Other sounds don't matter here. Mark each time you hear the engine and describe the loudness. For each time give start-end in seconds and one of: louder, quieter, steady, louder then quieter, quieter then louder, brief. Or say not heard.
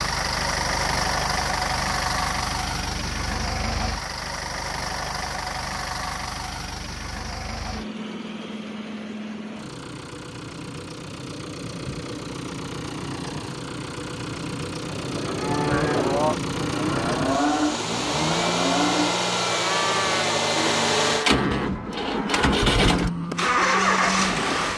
0.0-24.7 quieter then louder.